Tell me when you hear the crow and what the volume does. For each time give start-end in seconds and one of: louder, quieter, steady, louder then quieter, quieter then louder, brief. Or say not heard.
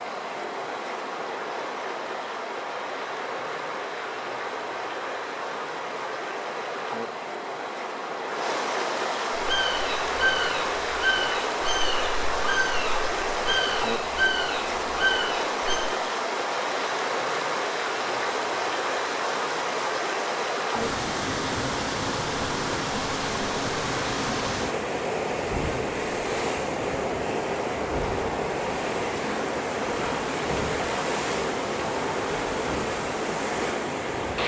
9.3-15.8 steady.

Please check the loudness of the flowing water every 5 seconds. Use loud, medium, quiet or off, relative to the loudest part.
medium, loud, loud, loud, loud, loud, loud.